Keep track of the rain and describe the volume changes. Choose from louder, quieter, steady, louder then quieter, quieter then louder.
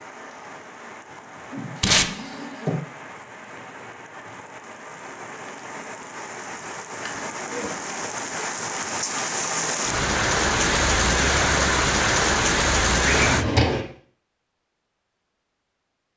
louder.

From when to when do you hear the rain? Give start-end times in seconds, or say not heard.
0.0-13.4.